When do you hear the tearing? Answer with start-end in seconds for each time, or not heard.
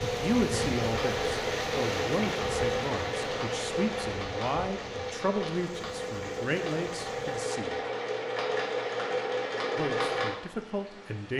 not heard.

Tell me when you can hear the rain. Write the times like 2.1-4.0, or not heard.
0.0-7.5.